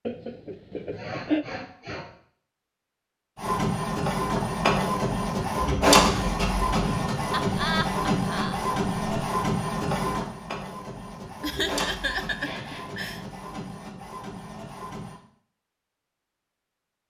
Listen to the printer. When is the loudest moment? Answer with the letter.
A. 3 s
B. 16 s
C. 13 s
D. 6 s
D.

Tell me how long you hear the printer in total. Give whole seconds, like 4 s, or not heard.
12 s.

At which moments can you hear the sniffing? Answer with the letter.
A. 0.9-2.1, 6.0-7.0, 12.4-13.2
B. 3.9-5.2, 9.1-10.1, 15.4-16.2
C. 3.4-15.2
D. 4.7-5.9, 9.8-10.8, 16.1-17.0
A.